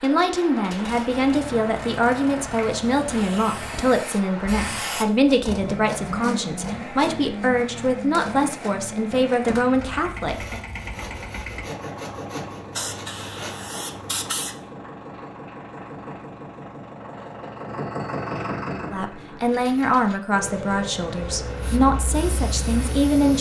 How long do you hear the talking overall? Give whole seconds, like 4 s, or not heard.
15 s.